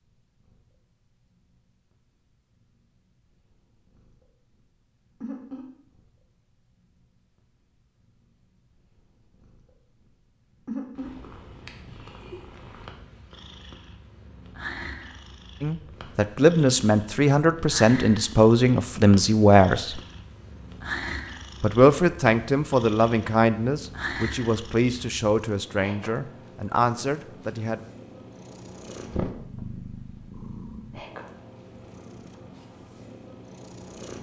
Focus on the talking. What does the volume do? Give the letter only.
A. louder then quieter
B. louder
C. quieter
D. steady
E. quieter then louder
C.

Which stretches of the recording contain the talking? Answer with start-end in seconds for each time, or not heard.
15.6-20.0, 21.6-27.9.